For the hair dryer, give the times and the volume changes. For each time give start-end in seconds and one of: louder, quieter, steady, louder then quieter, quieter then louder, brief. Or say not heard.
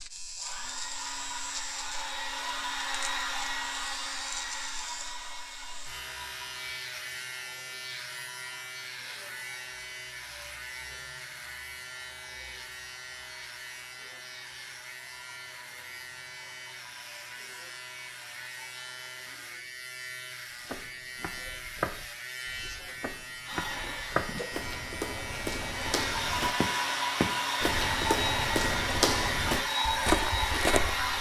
0.2-19.4 quieter
23.4-31.1 louder.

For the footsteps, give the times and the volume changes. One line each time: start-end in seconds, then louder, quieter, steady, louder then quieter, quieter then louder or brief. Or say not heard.
20.6-31.1 louder.